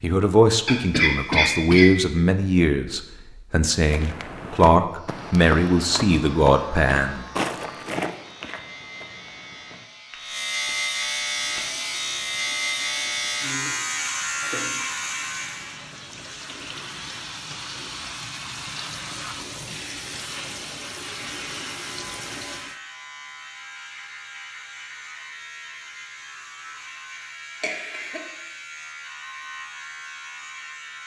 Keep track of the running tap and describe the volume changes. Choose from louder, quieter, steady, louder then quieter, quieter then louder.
louder.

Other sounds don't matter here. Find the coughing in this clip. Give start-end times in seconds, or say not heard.
0.7-1.9, 27.6-28.3.